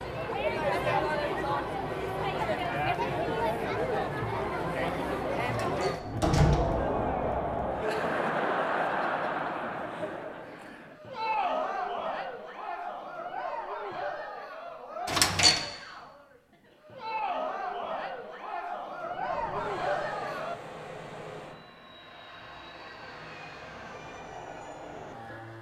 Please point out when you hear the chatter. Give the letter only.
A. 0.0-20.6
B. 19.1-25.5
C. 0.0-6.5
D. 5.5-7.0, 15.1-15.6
A.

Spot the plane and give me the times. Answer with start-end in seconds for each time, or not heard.
19.1-25.5.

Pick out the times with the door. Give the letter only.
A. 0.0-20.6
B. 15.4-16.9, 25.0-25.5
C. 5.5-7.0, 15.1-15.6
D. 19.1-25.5
C.